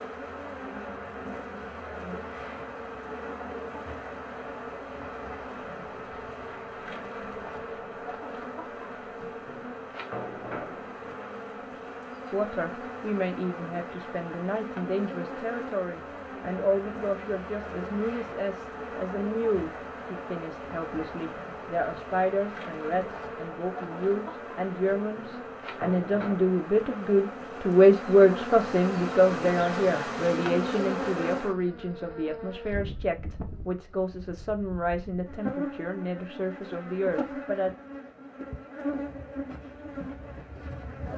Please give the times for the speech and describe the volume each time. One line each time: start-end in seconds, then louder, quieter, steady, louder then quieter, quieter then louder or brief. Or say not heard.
12.3-37.7 louder then quieter.